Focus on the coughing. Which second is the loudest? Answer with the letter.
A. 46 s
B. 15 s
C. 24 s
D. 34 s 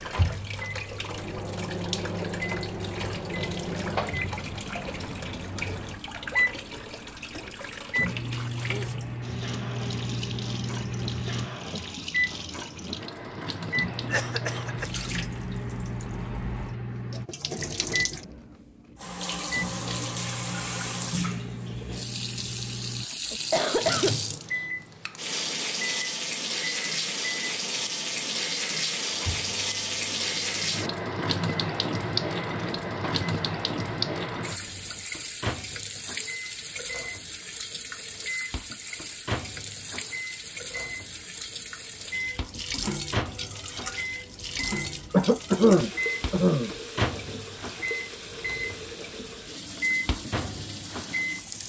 A.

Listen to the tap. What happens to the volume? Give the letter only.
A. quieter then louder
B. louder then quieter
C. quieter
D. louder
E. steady
B.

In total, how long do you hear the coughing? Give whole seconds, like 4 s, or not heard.
4 s.